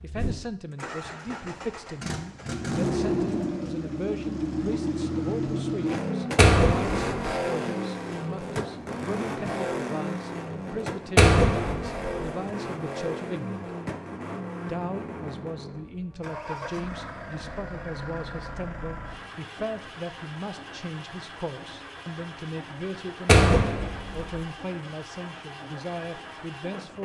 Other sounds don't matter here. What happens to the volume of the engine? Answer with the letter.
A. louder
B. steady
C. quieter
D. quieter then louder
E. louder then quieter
C.